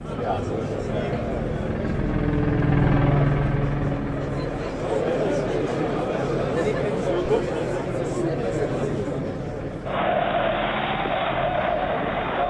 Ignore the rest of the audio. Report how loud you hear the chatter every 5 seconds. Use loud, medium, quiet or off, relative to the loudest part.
medium, loud, loud.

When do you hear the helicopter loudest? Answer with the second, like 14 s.
3 s.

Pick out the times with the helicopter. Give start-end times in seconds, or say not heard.
0.0-12.4.